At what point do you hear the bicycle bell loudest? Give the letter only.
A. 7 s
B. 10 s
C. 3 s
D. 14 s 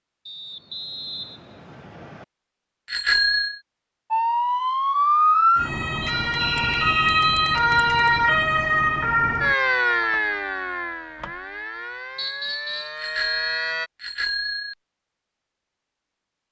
C.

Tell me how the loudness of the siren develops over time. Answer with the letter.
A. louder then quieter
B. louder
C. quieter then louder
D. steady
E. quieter
E.